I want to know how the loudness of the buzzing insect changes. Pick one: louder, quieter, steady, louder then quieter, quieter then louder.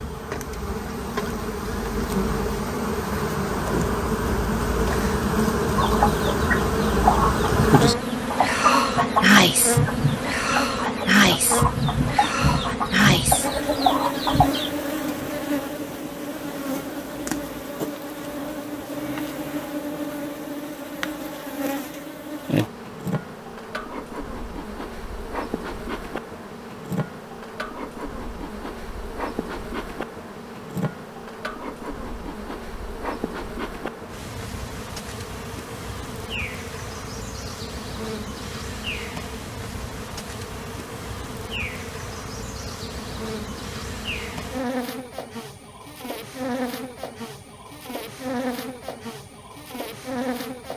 quieter.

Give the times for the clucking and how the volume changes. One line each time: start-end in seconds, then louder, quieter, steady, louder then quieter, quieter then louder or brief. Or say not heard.
5.8-14.7 steady.